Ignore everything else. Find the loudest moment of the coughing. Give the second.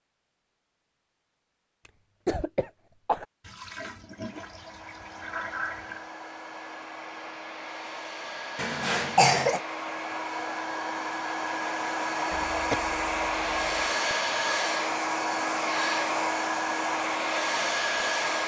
9 s.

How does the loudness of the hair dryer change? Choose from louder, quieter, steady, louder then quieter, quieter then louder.
louder.